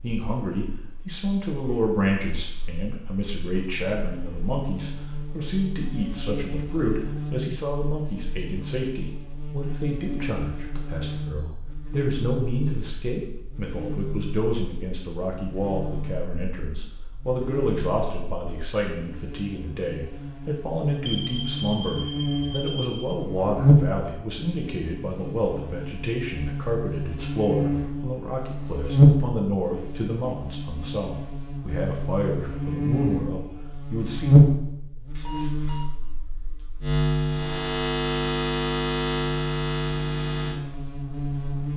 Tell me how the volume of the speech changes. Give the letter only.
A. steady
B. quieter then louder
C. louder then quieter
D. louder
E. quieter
A.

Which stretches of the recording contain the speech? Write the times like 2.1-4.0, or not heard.
0.0-34.3.